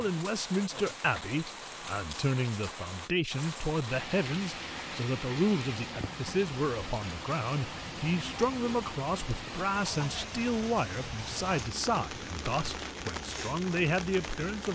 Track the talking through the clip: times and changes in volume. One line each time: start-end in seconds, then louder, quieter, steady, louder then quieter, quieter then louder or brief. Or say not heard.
0.0-14.7 steady.